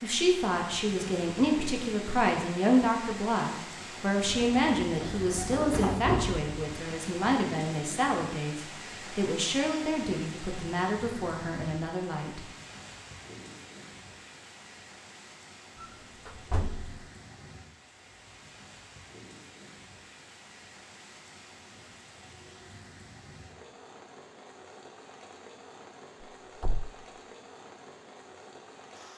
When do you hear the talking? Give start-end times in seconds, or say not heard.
0.0-12.4.